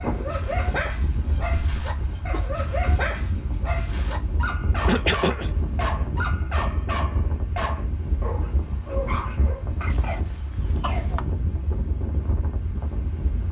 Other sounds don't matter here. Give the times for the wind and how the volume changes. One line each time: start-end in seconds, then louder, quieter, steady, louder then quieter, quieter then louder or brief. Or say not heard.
0.0-13.4 steady.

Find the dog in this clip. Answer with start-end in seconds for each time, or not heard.
0.0-9.7.